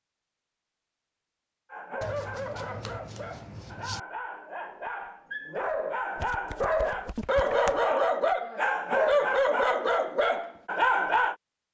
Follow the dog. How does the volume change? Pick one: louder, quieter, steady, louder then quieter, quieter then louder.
louder.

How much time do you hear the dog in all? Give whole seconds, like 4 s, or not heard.
10 s.